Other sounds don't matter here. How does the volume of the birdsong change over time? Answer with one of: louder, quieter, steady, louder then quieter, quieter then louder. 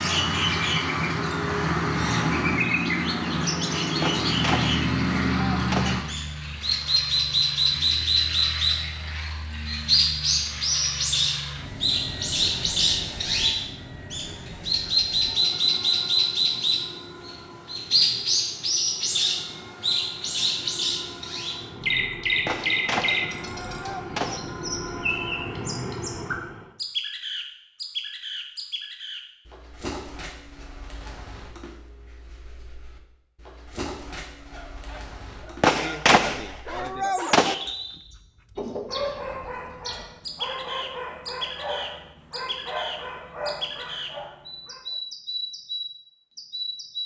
quieter.